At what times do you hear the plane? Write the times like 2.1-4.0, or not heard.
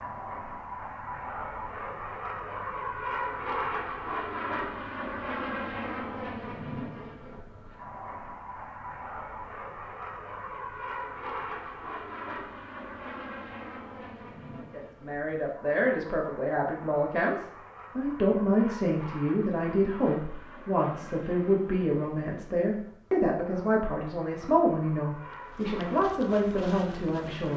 0.0-27.5.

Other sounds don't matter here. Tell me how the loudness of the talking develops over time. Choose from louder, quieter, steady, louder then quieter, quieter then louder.
steady.